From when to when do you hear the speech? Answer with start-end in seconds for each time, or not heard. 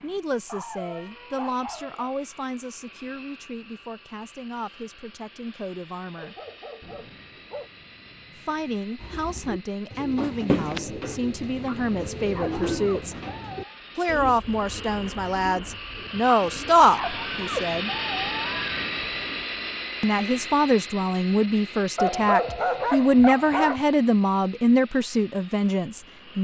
0.0-6.3, 8.3-13.2, 13.9-17.9, 20.0-26.4.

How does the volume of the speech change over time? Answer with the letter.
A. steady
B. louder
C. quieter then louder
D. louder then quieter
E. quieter
B.